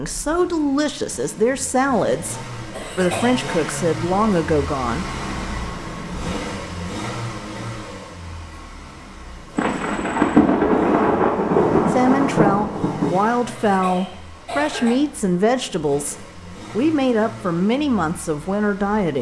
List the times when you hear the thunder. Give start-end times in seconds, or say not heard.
9.6-13.2.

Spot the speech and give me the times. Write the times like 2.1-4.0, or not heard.
0.0-5.0, 11.9-19.1.